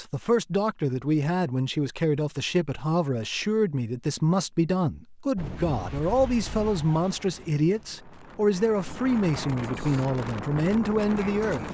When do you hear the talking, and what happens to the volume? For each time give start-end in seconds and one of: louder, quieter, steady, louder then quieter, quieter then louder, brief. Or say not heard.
0.0-11.6 steady.